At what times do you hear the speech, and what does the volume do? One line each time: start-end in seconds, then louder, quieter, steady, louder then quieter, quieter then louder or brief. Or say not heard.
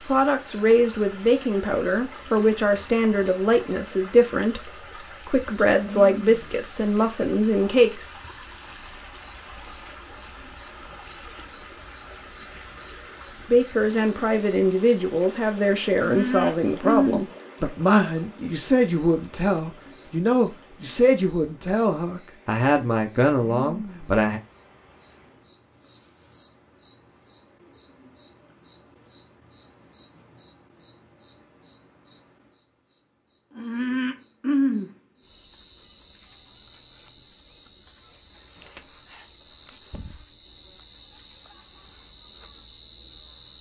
0.1-8.2 steady
13.5-24.4 steady.